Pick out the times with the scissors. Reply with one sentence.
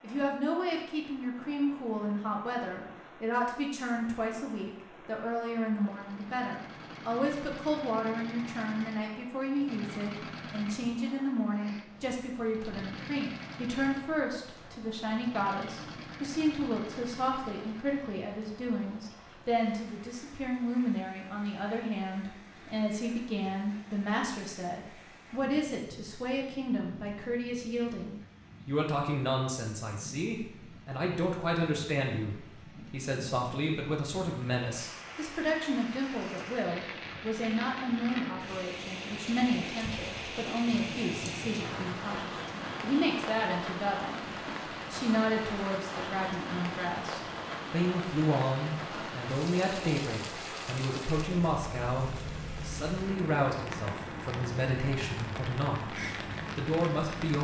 You can hear the scissors from 40.7 to 42.0 s.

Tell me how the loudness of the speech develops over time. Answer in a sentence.
The loudness of the speech stays about the same.